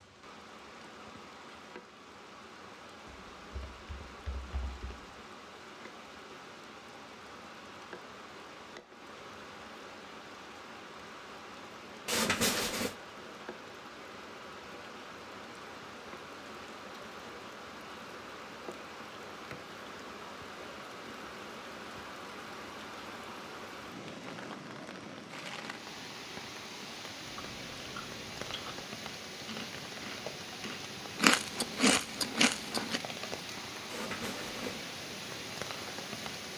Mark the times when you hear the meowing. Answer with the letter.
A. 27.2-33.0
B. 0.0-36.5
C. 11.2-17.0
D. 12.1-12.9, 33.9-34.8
D.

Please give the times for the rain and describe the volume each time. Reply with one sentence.
The rain can be heard from 0.0 to 36.5 s, getting louder.